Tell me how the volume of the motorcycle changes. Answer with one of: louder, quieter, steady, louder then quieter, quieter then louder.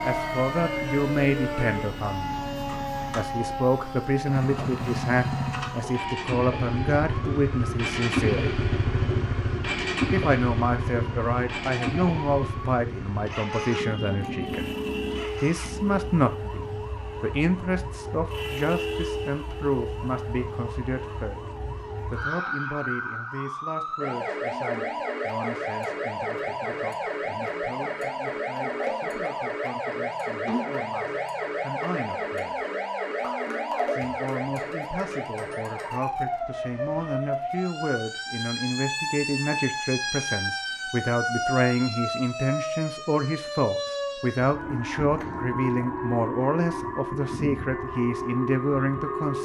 louder then quieter.